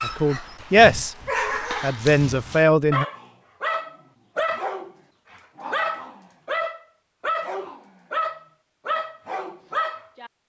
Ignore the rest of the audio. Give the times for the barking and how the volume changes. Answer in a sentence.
You can hear the barking from 0.0 to 10.3 s, at a steady volume.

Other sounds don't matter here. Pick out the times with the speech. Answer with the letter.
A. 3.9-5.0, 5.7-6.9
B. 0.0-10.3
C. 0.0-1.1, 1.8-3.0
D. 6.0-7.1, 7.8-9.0
C.